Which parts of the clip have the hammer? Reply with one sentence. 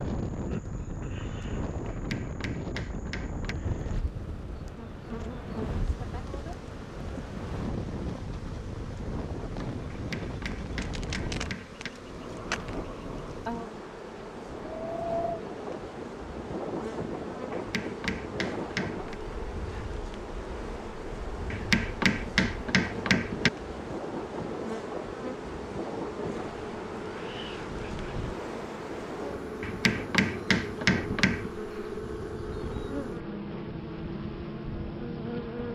You can hear the hammer from 1.9 to 3.5 s, from 9.9 to 11.9 s, from 17.5 to 19.1 s, from 21.5 to 23.5 s and from 29.6 to 31.5 s.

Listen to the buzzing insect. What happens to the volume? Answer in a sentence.
The loudness of the buzzing insect goes up.